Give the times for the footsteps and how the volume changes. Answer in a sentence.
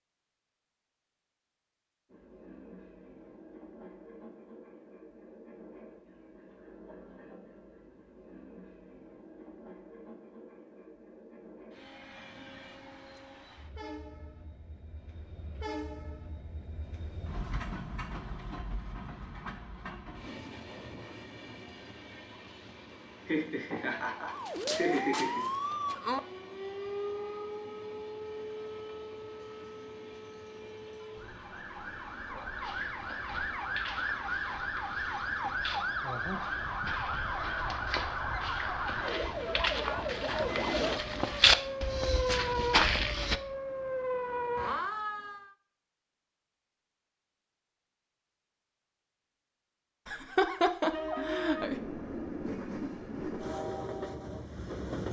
You can hear the footsteps from 32.5 to 43.4 s, getting louder.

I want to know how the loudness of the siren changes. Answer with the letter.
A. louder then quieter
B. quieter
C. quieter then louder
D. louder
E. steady
C.